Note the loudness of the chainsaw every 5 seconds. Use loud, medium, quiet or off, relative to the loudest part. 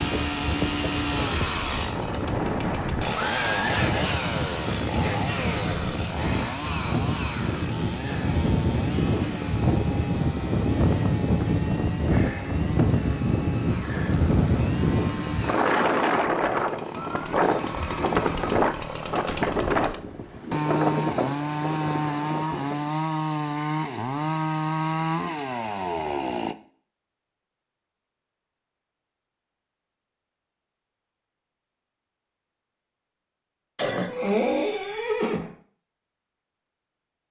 loud, medium, medium, medium, loud, loud, off, off.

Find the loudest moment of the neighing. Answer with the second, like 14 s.
34 s.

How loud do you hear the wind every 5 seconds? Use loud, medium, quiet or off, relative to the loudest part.
medium, loud, loud, loud, medium, off, off, off.